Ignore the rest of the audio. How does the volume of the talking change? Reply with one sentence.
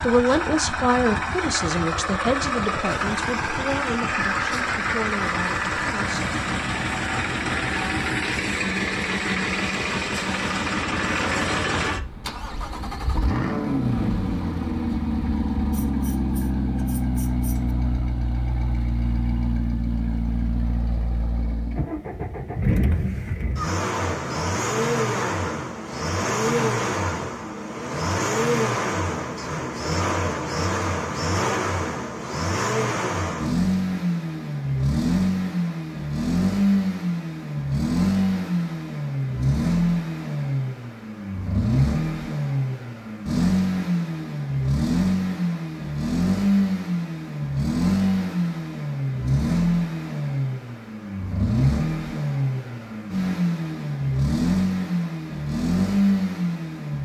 The volume of the talking goes down.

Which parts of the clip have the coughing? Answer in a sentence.
The coughing can't be heard in this clip.